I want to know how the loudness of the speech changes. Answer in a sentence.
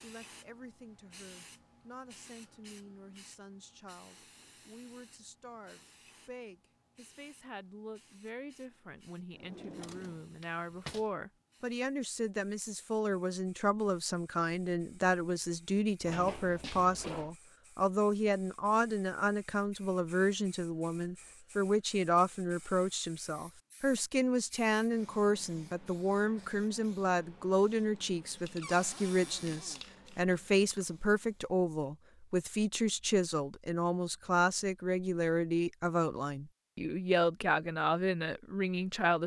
The volume of the speech goes up.